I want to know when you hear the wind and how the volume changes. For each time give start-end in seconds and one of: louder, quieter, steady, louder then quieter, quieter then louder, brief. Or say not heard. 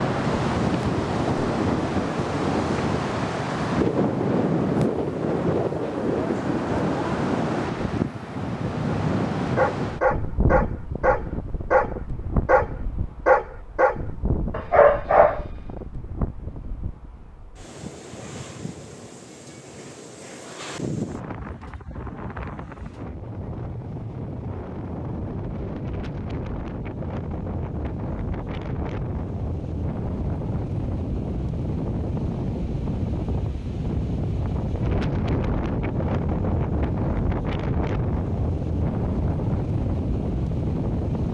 0.0-41.2 quieter then louder.